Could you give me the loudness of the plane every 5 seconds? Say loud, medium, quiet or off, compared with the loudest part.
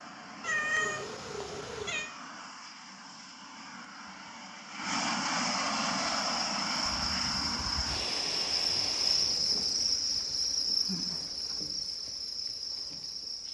medium, loud, off.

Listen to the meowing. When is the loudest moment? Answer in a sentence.
The volume of the meowing peaks at 1 second.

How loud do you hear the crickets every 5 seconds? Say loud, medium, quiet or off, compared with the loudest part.
off, loud, loud.